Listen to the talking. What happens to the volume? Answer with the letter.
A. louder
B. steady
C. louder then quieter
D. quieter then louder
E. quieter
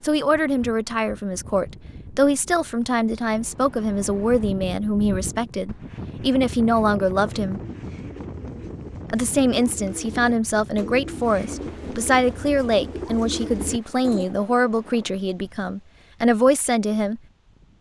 B.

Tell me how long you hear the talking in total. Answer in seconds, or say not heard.
16 s.